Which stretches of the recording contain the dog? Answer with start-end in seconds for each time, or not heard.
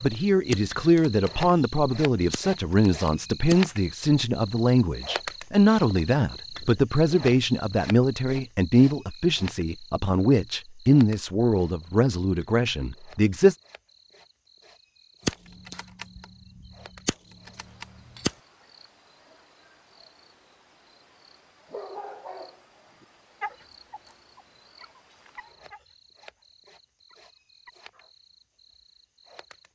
21.7-28.1.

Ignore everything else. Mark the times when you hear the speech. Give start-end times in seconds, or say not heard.
0.0-13.6.